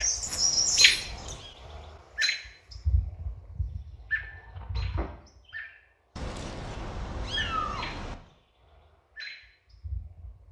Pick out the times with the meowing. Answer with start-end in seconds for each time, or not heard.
0.2-1.6, 6.2-8.2.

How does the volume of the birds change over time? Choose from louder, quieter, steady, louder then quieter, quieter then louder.
quieter.